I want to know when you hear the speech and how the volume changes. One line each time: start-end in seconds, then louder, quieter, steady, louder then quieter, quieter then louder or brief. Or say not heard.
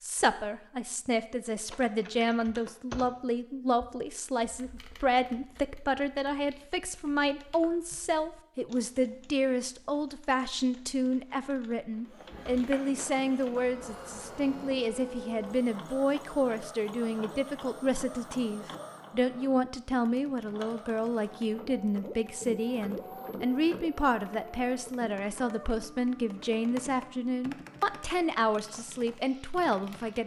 0.0-30.2 steady.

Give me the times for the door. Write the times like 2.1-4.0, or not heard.
not heard.